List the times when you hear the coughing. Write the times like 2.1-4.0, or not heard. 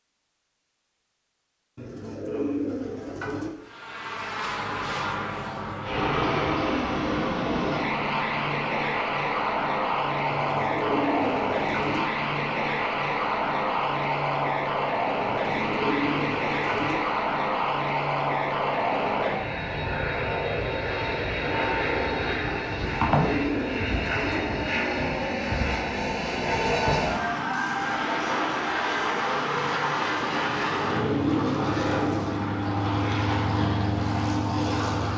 not heard.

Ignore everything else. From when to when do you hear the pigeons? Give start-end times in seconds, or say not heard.
1.8-3.5, 10.3-12.1, 15.2-17.0, 22.6-24.4, 30.4-32.2.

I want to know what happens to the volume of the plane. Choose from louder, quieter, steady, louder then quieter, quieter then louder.
steady.